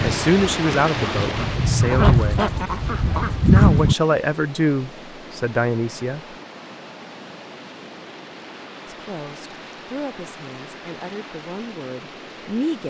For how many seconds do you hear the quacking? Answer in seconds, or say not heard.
4 s.